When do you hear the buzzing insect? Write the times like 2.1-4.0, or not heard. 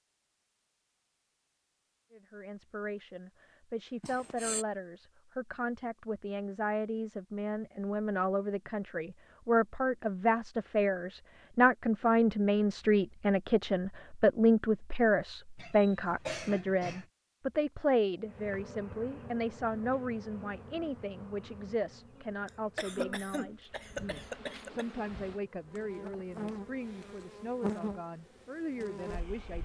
18.2-29.5.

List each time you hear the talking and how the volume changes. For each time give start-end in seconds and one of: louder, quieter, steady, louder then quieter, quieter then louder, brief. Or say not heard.
2.1-29.5 louder then quieter.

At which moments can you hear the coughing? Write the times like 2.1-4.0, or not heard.
4.0-4.7, 15.6-17.1, 22.4-24.9.